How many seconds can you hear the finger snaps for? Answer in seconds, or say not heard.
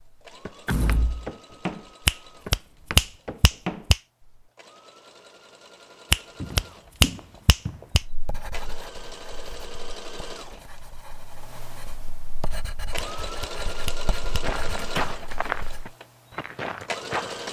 5 s.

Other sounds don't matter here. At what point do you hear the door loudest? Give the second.
1 s.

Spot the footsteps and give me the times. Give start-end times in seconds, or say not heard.
0.2-4.5, 6.3-7.8, 14.4-17.4.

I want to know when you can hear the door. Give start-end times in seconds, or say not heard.
0.7-1.3, 14.8-15.2.